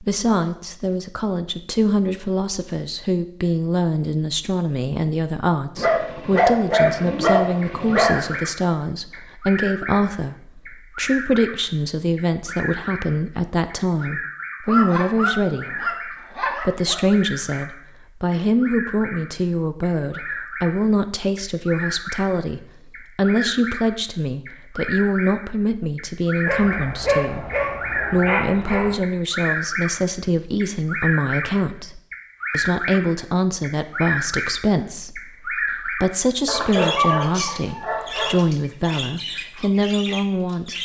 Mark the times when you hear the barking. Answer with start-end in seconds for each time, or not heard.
5.8-8.4, 14.7-17.0, 26.4-28.9, 36.5-38.4.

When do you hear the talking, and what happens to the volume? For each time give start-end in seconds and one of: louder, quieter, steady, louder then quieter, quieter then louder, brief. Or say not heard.
0.0-40.7 steady.